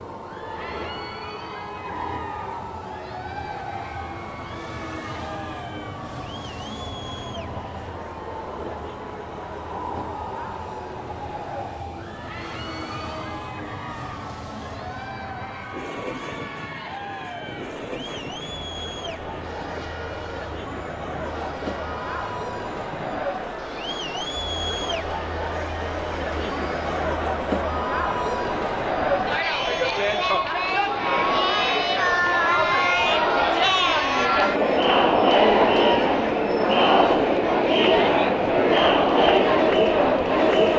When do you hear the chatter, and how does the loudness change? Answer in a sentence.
The chatter can be heard from 0.1 to 40.7 s, getting louder.